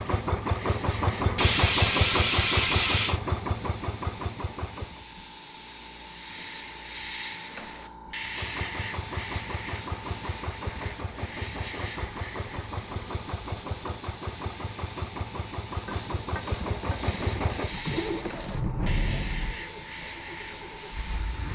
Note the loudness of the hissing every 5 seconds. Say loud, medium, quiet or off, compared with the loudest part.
medium, loud, loud, loud, loud.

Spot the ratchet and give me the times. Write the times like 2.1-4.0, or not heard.
1.4-3.2, 15.8-18.6.